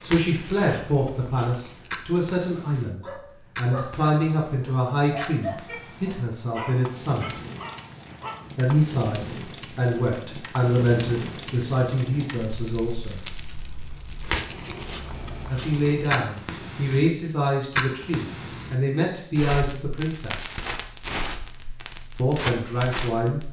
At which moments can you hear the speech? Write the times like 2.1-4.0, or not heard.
0.0-7.4, 8.6-13.2, 15.4-20.6, 22.1-23.4.